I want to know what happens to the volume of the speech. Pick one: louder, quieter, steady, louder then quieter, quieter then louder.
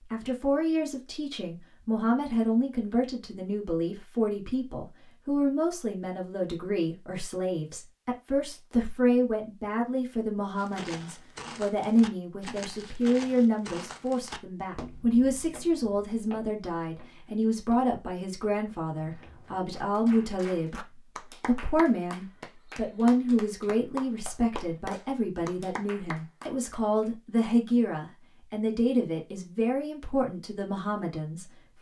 steady.